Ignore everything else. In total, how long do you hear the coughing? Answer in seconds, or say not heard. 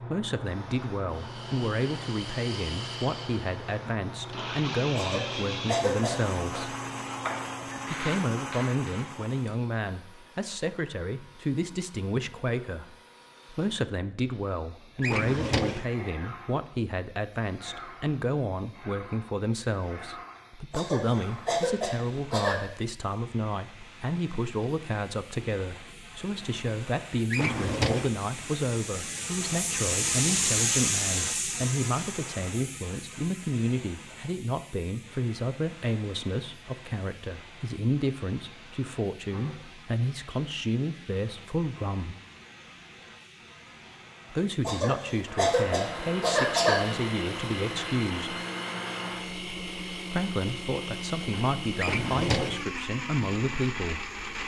6 s.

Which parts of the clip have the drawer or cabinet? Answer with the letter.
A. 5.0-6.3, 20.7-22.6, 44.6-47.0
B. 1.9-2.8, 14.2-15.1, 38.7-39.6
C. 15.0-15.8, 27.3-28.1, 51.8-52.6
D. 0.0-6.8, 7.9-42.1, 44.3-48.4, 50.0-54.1
C.